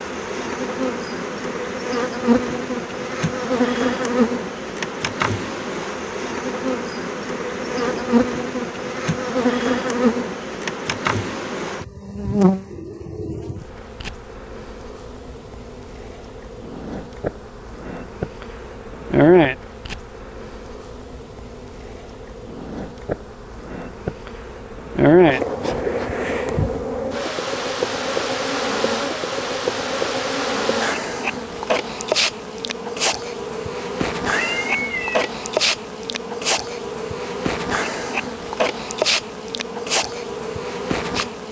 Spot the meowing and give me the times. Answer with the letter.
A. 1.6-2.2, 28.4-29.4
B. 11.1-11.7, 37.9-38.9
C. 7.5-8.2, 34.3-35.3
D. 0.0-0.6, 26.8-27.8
C.